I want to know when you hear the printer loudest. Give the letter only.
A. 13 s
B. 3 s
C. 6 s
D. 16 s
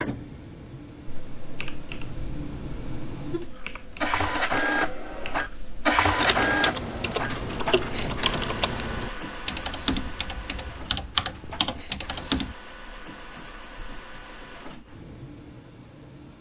C.